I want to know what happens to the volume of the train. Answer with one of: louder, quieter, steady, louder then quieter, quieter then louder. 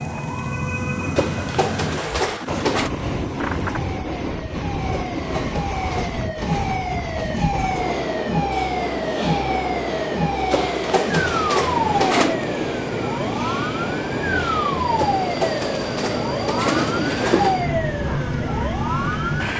steady.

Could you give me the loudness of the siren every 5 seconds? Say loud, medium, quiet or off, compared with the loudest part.
medium, loud, loud, loud.